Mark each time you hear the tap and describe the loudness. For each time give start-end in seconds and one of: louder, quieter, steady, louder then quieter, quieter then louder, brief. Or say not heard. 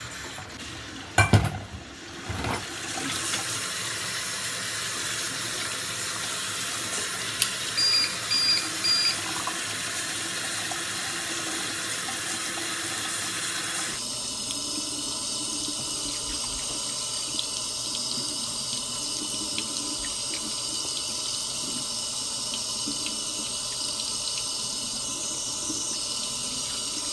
0.0-27.0 steady.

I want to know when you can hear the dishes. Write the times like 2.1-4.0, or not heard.
0.1-3.5.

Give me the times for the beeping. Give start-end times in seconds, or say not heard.
7.4-9.2.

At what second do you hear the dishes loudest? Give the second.
1 s.